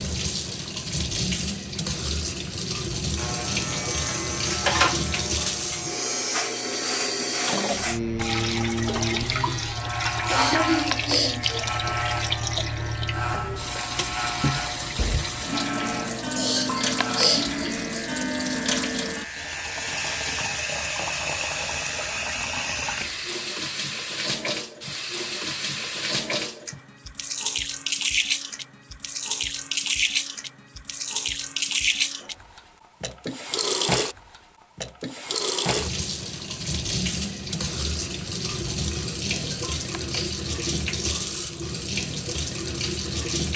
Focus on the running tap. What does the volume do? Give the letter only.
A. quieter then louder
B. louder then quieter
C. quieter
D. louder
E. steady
E.